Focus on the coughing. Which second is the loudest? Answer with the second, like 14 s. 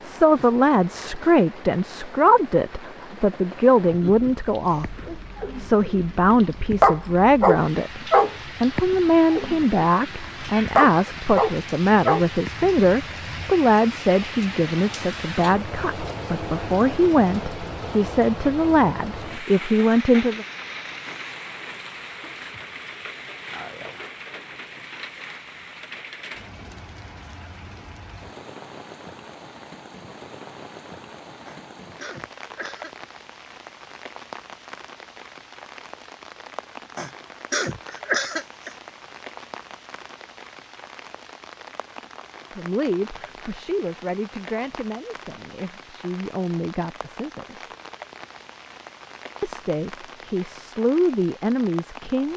38 s.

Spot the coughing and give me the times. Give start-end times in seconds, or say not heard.
3.9-5.2, 31.4-33.1, 37.0-38.8.